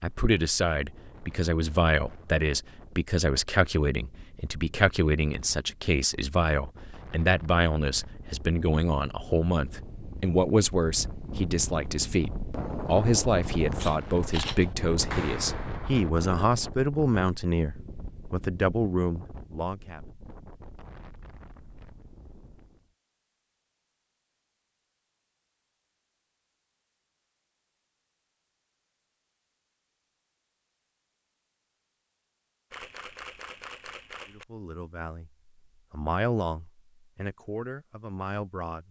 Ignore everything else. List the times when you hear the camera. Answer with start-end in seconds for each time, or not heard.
13.8-14.8, 32.7-34.5.